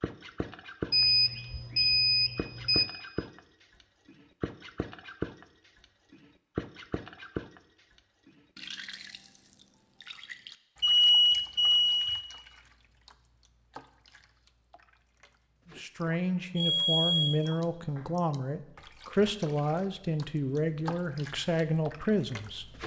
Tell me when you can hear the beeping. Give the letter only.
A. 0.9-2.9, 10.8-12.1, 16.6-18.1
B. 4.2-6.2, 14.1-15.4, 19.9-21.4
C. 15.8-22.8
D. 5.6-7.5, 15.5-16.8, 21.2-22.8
A.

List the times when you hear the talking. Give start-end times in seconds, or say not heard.
15.8-22.8.